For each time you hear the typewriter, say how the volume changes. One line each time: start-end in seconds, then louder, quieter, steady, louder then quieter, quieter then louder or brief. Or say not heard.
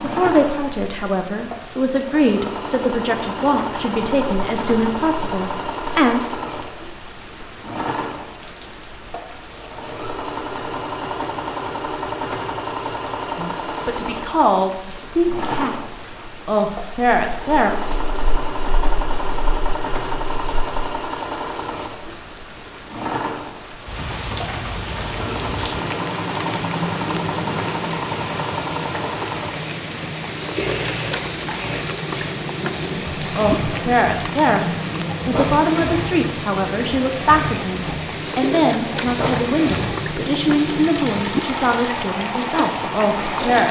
not heard.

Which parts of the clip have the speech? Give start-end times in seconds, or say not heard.
0.0-6.2, 13.3-17.7, 33.1-43.6.